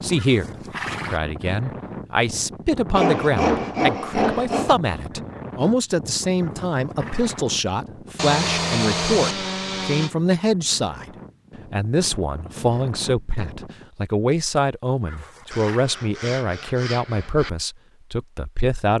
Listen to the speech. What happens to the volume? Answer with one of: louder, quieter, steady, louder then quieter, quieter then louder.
steady.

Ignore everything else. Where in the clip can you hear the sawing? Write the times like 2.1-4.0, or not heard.
2.9-4.8, 8.2-10.1, 15.5-17.5.